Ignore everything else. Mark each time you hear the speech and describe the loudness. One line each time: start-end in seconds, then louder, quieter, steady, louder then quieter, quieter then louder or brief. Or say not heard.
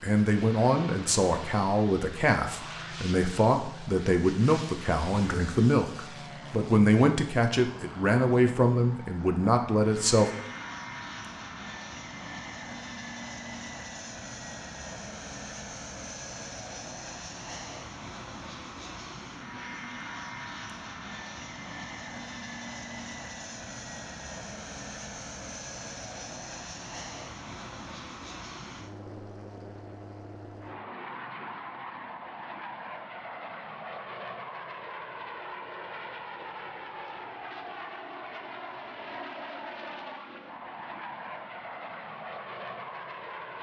0.0-10.3 steady.